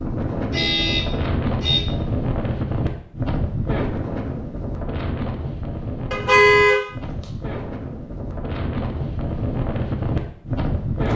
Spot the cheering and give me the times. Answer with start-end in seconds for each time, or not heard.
not heard.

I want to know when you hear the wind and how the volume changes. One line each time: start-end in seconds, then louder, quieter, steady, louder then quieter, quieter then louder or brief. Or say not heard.
0.0-11.1 quieter then louder.